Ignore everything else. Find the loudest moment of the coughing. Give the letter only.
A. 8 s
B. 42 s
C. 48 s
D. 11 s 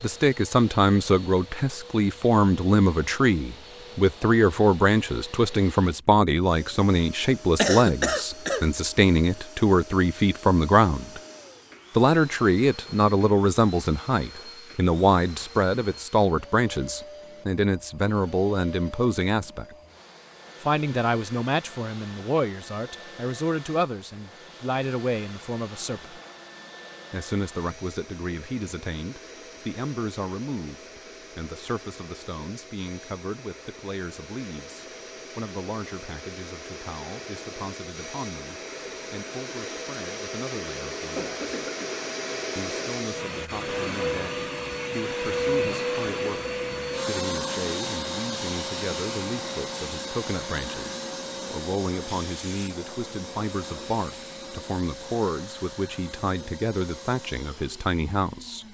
A.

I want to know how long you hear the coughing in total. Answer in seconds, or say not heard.
2 s.